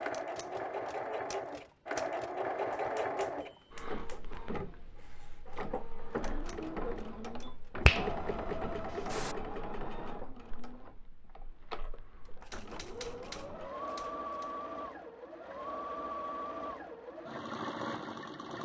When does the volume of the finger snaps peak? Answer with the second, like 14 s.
8 s.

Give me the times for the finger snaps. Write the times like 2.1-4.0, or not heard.
7.8-9.3.